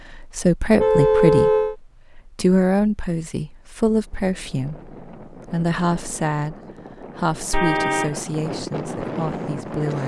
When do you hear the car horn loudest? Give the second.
1 s.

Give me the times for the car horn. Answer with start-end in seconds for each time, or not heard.
0.8-1.8, 7.5-8.2.